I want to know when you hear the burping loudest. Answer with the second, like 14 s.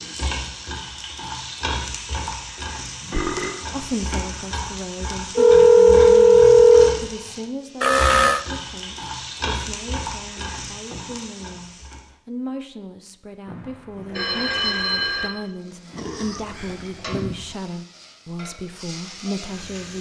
8 s.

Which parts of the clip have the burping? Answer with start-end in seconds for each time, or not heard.
3.0-3.6, 7.8-8.4, 15.9-17.6.